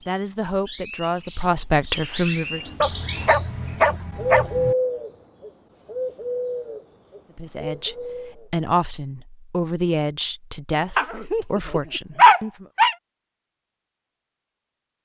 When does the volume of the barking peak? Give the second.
12 s.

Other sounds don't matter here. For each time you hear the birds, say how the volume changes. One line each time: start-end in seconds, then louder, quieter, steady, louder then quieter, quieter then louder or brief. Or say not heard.
0.0-8.5 louder then quieter.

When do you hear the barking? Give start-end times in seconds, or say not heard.
2.8-4.8, 10.9-12.9.